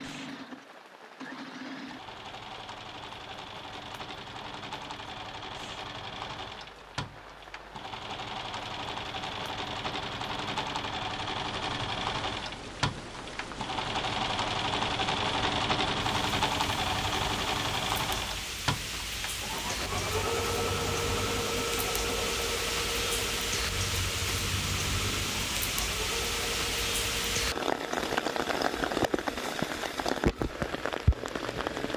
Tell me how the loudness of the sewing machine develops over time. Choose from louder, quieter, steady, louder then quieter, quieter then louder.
louder then quieter.